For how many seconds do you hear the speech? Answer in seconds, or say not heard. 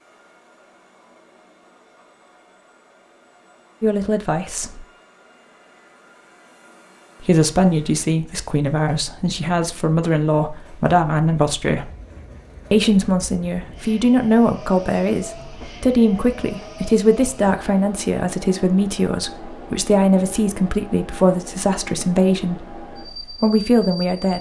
17 s.